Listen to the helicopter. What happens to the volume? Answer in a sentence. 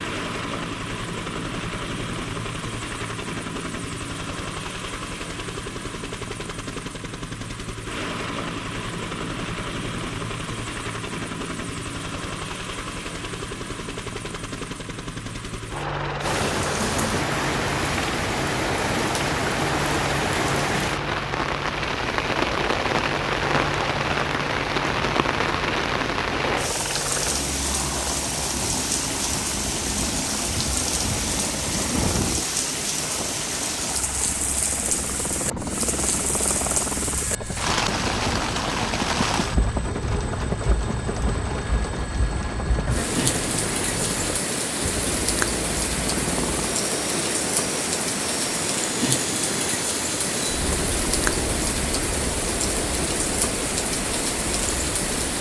The loudness of the helicopter stays about the same.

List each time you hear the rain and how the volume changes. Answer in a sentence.
You can hear the rain from 16.2 to 55.3 s, at a steady volume.